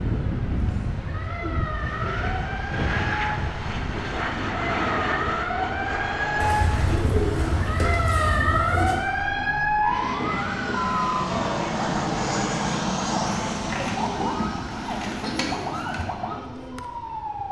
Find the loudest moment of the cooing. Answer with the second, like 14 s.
7 s.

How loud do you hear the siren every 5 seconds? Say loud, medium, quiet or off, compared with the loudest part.
medium, loud, loud, medium.